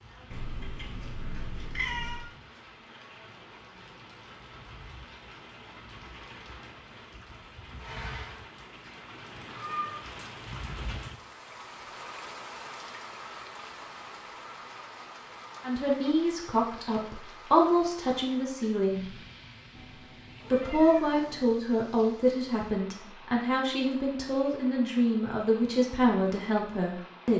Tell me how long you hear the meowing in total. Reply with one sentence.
You can hear the meowing for 4 seconds altogether.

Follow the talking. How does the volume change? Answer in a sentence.
The loudness of the talking stays about the same.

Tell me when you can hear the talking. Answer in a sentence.
The talking can be heard from 15.6 to 19.1 s and from 20.5 to 27.3 s.